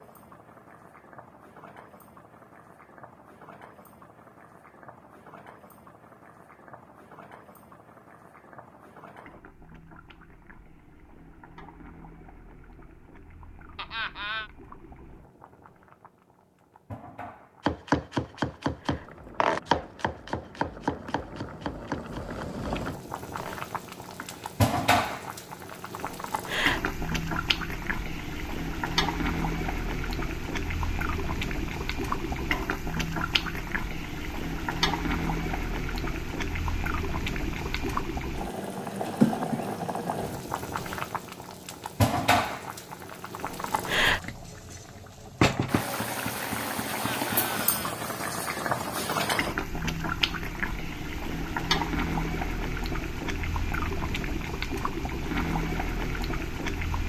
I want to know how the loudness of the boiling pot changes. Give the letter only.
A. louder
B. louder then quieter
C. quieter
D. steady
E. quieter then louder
A.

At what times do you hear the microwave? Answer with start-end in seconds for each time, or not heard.
not heard.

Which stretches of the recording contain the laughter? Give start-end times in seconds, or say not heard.
13.8-14.5, 46.9-48.0.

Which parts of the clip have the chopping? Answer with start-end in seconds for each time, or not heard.
17.6-24.4.